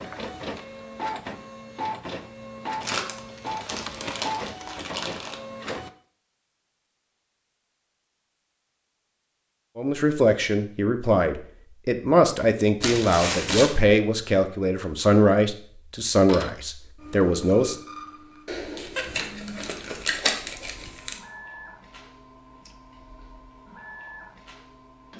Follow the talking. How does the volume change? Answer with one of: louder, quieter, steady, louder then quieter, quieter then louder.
steady.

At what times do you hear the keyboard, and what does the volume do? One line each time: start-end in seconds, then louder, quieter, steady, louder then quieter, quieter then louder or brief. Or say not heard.
not heard.